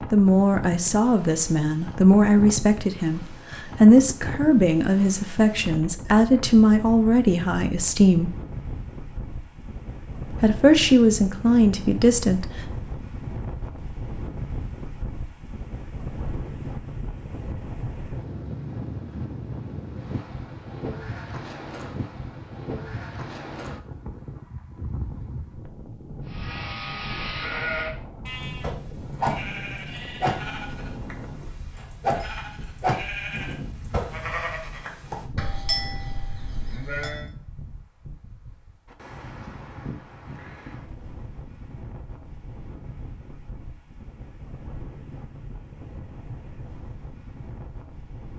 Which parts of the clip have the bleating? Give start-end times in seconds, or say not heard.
26.3-37.2.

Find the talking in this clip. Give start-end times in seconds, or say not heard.
0.1-8.3, 10.3-12.5.